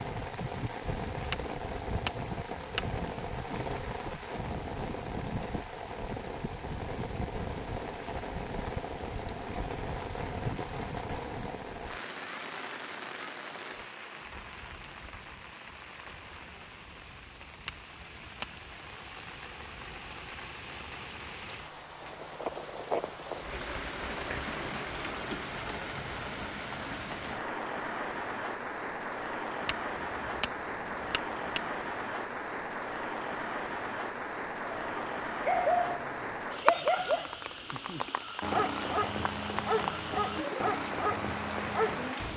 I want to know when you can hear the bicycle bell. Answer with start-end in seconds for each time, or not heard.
1.3-2.9, 17.6-18.6, 29.6-31.8.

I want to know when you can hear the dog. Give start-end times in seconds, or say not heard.
34.6-42.1.